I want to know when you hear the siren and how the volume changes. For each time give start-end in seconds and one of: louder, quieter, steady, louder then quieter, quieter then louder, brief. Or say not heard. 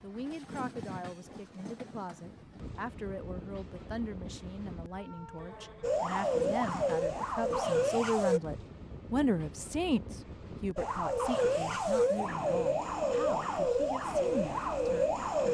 5.8-8.4 brief
10.8-15.5 steady.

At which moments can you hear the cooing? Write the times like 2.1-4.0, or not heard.
not heard.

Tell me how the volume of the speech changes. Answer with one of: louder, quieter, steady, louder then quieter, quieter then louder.
louder then quieter.